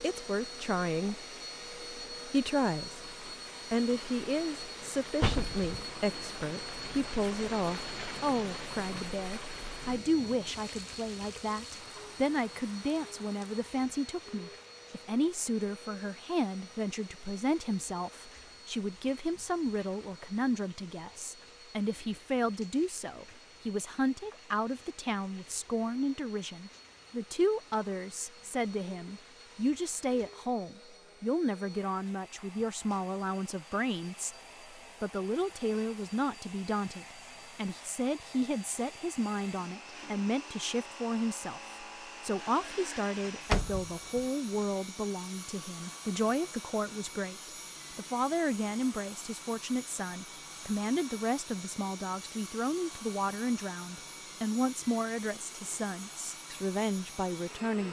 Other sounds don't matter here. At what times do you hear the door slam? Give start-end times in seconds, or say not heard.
5.2-5.8, 43.2-44.2.